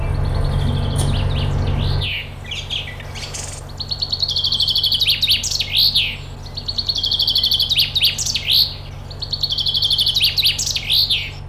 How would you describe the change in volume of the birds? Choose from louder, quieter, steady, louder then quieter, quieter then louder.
louder.